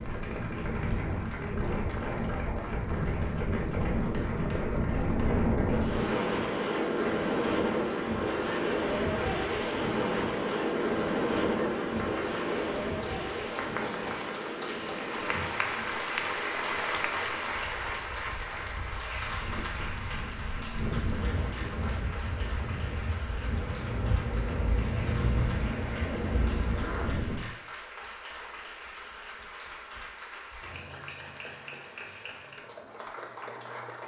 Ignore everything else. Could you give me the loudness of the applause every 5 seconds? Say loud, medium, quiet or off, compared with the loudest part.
medium, medium, medium, loud, medium, medium, medium.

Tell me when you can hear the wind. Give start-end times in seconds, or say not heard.
0.0-27.5.